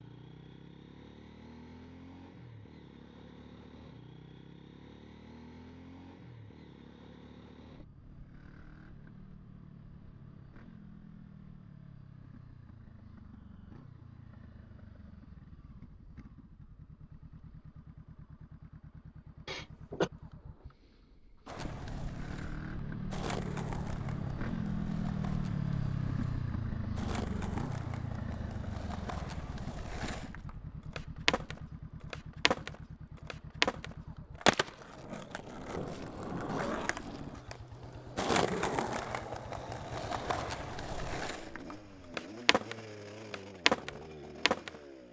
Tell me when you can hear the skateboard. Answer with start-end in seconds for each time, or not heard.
21.4-44.8.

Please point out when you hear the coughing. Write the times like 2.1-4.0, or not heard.
19.4-20.1.